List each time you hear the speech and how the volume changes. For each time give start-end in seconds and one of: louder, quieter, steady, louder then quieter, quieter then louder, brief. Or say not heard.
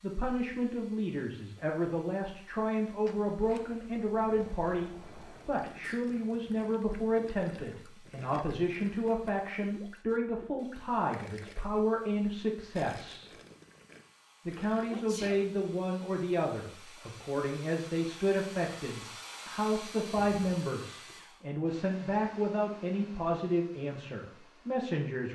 0.0-13.3 steady
14.4-25.3 steady.